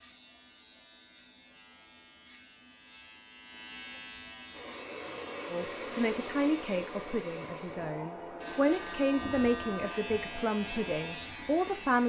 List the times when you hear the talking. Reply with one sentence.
The talking can be heard from 5.5 to 12.0 s.